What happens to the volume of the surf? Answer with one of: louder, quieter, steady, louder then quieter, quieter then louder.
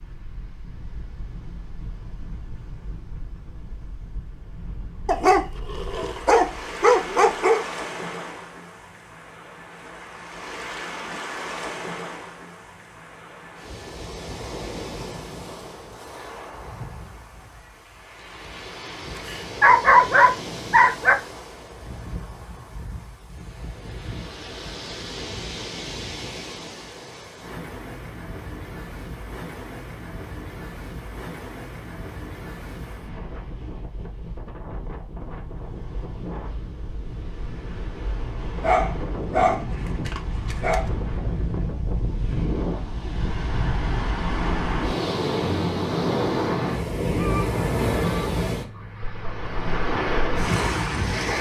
louder.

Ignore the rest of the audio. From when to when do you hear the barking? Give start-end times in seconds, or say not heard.
5.0-7.7, 19.1-21.1, 38.5-40.9.